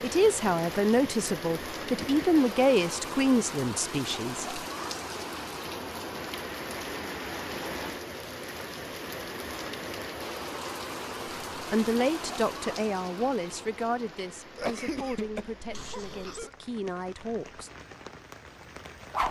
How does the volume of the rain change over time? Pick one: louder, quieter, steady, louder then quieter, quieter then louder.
quieter.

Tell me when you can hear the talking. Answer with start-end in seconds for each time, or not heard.
0.0-4.6, 11.6-17.7.